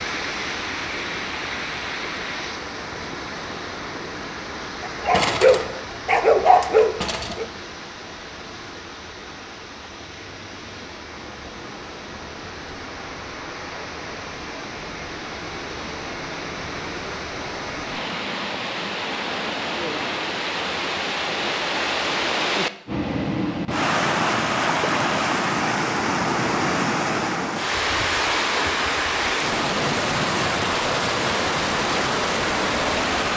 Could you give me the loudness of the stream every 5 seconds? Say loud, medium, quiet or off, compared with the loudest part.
medium, quiet, quiet, medium, loud, loud, loud.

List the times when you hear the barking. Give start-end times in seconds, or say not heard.
4.8-7.5.